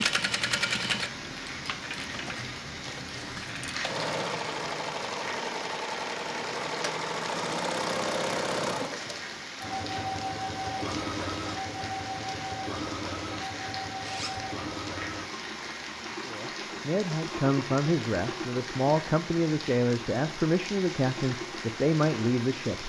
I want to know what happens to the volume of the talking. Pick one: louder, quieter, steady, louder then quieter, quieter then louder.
steady.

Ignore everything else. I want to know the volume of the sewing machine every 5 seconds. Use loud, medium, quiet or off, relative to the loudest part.
loud, loud, loud, medium, medium.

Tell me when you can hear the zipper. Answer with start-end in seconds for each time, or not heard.
14.0-14.5.